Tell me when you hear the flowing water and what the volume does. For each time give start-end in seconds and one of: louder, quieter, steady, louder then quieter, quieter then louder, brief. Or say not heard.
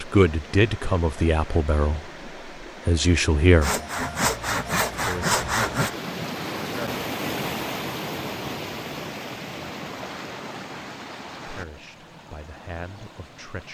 0.0-13.6 louder then quieter.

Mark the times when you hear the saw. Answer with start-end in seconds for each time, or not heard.
3.6-5.9.